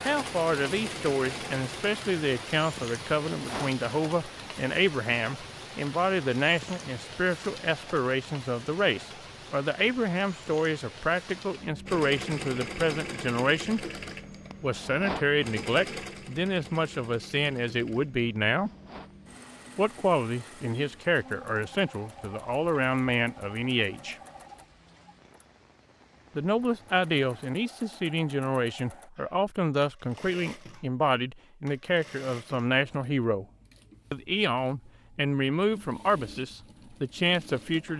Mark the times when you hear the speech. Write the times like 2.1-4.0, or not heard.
0.1-13.8, 14.6-18.7, 19.8-24.1, 26.4-33.5, 34.1-37.9.